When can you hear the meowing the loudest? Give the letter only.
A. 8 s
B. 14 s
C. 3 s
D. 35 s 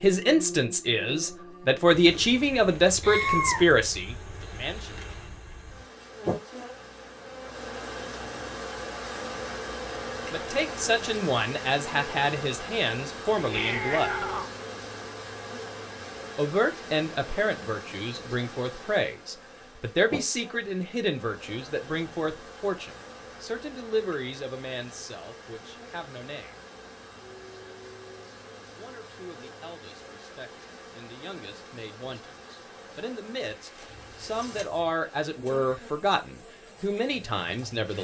C.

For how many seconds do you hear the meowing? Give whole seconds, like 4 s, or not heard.
3 s.